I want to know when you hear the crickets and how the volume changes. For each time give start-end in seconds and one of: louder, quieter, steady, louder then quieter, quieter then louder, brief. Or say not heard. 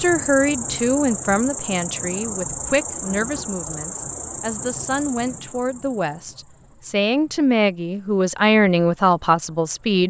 0.0-10.0 quieter.